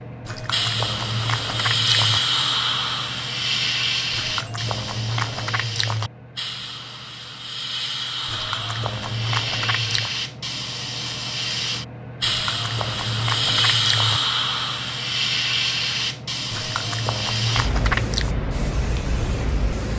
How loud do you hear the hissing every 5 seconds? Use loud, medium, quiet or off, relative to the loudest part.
loud, medium, loud, loud.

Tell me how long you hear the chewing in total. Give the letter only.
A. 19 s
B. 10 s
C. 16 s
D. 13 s
B.